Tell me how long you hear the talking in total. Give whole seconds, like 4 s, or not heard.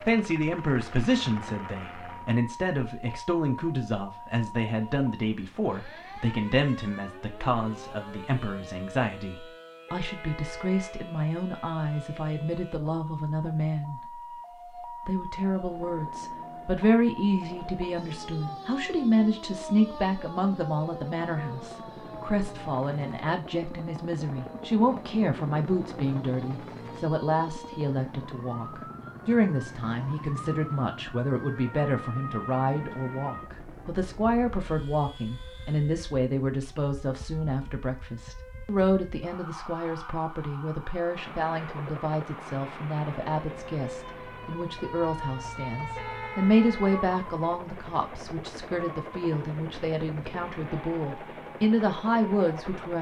52 s.